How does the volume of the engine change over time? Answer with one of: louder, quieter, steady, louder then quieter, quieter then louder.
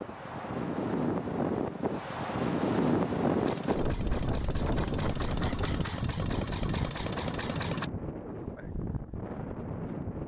louder.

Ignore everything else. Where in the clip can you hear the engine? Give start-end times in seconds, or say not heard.
3.4-7.9.